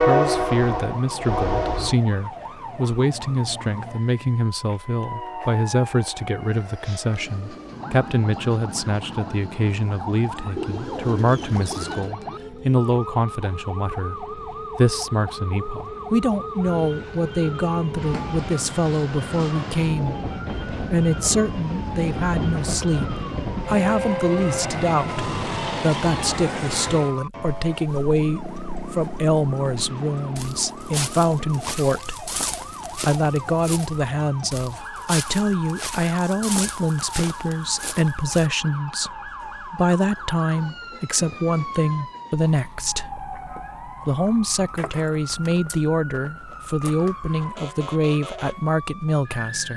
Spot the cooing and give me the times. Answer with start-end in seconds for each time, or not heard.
10.6-12.2.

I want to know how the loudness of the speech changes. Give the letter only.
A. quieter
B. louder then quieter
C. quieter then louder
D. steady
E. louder
D.